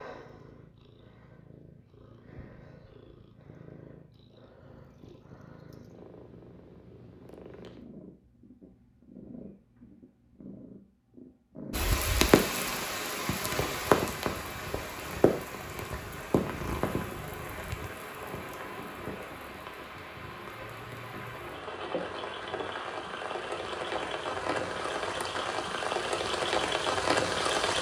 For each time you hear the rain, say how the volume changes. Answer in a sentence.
You can hear the rain from 11.7 to 27.7 s, getting quieter then louder.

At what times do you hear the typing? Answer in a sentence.
You can't hear the typing here.